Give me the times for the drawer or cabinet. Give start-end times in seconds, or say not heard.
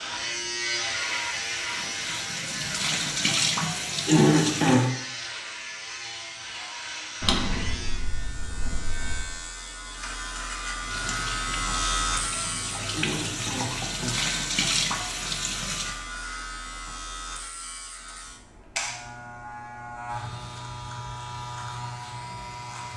7.2-9.2.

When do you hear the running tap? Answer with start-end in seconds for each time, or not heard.
0.0-4.9, 10.8-16.1.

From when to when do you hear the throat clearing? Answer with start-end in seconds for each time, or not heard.
3.6-4.9, 12.4-14.2.